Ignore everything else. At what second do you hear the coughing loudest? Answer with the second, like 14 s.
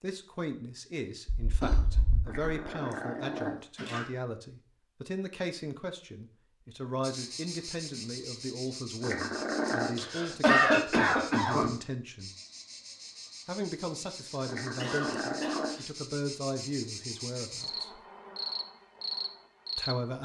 11 s.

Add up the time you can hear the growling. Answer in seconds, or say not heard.
4 s.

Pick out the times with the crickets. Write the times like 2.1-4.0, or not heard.
7.0-19.9.